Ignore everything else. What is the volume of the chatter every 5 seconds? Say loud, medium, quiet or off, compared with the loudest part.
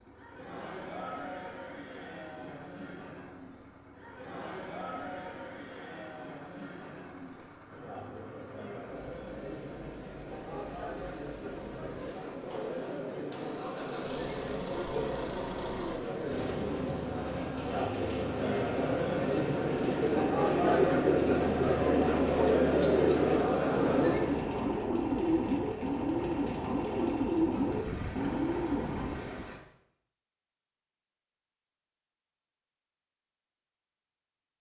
quiet, quiet, medium, medium, loud, off, off.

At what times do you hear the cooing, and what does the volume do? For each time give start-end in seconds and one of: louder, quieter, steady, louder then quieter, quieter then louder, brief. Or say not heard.
19.8-29.4 steady.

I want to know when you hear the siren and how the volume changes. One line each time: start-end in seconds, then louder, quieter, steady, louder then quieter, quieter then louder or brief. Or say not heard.
not heard.